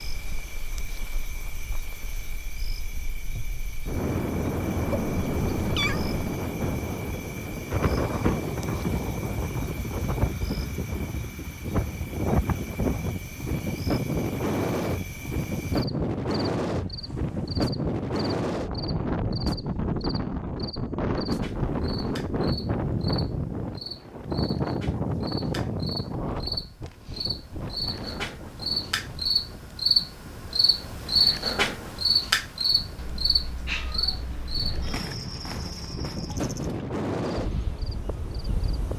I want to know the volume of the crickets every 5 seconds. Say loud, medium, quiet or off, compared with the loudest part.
quiet, quiet, quiet, quiet, quiet, loud, loud, quiet.